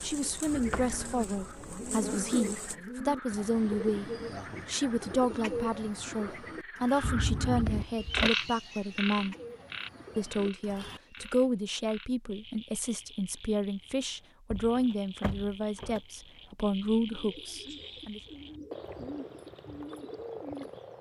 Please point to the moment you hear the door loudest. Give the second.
8 s.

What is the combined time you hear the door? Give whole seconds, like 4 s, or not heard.
4 s.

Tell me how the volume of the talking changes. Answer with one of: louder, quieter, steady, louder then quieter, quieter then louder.
steady.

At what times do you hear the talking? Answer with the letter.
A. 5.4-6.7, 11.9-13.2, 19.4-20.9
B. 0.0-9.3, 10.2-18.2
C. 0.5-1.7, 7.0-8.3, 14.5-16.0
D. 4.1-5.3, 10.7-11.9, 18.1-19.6
B.